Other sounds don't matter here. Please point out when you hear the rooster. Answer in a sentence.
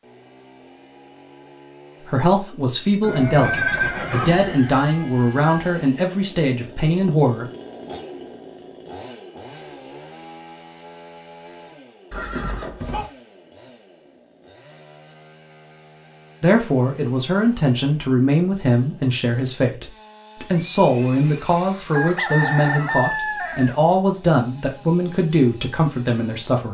You can hear the rooster from 4.0 to 5.8 s and from 21.9 to 23.8 s.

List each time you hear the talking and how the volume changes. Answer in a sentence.
The talking can be heard from 2.0 to 7.5 s, at a steady volume; and from 16.4 to 26.6 s, at a steady volume.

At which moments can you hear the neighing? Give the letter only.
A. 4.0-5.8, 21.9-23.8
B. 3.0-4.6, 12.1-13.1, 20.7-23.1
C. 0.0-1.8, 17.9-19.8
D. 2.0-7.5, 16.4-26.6
B.